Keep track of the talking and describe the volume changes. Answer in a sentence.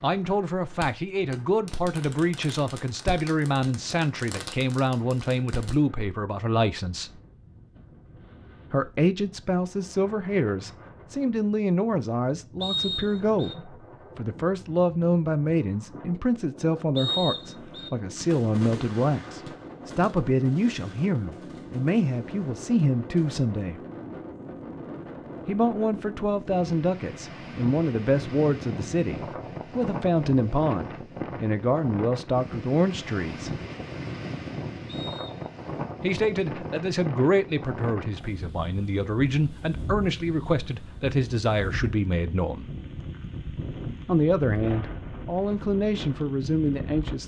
The volume of the talking stays about the same.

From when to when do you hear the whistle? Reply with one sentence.
You can hear the whistle from 12.6 to 13.6 s, from 16.9 to 17.9 s and from 34.9 to 35.5 s.